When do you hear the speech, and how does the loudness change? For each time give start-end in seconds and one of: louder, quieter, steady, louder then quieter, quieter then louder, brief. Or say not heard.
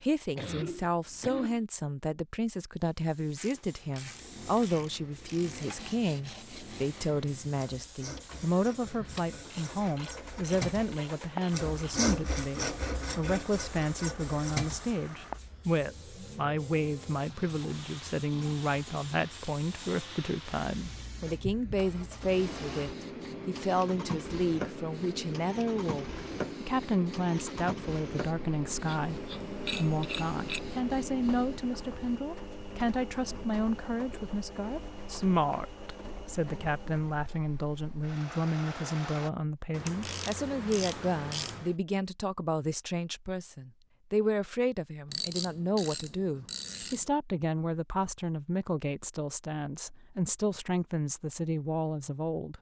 0.0-52.5 steady.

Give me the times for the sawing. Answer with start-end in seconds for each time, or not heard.
5.6-15.3.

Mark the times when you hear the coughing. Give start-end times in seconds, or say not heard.
0.3-1.6.